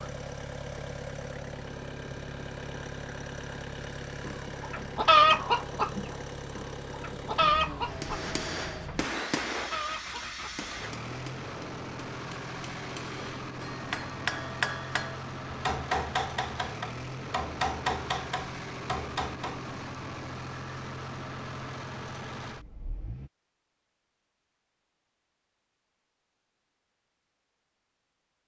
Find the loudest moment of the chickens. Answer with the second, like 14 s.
5 s.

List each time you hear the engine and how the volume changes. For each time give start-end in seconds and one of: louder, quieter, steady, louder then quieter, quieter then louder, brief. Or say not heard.
0.0-23.3 steady.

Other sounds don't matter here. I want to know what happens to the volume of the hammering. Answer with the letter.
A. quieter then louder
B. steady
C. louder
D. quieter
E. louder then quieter
A.